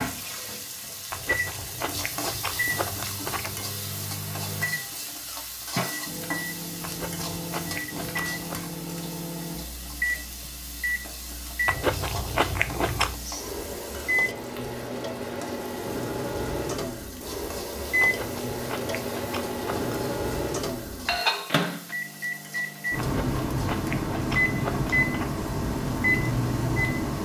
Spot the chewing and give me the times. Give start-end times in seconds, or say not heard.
1.1-3.6, 6.8-8.6, 11.7-13.2, 18.0-19.9, 22.9-25.3.